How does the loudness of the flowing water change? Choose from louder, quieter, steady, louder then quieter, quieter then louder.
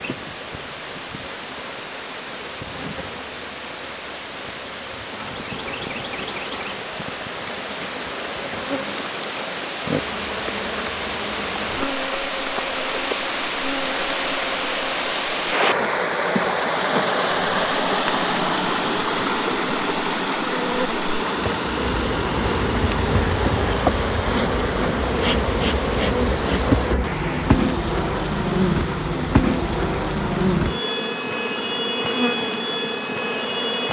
louder then quieter.